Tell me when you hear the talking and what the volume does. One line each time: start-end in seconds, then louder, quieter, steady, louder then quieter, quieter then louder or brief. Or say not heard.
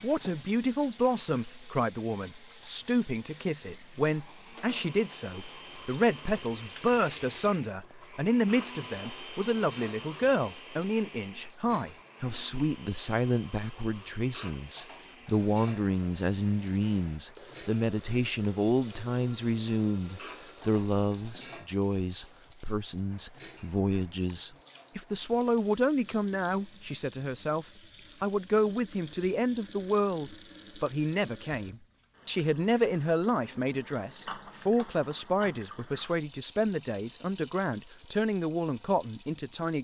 0.0-39.8 steady.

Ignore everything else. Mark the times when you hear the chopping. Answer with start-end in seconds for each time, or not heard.
not heard.